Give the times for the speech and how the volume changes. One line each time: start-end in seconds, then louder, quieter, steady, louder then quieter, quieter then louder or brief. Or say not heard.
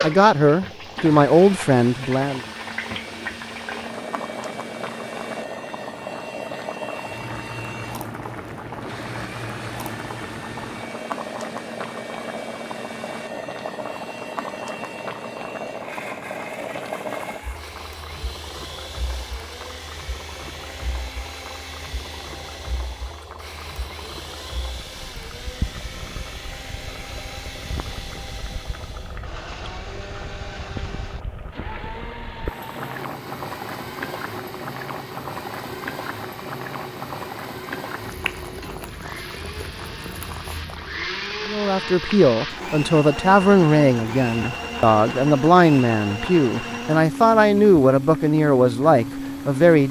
0.0-2.5 brief
41.5-49.8 steady.